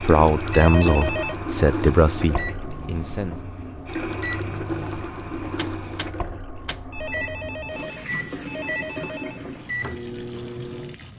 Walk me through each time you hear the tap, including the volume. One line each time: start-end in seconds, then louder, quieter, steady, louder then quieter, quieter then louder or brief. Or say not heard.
0.0-11.1 quieter.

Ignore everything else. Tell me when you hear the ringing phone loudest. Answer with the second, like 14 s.
1 s.